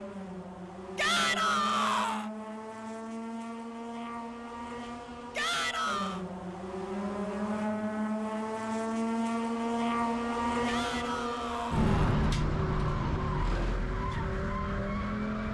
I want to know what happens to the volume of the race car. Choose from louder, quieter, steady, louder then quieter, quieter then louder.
louder.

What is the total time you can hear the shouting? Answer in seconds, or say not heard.
4 s.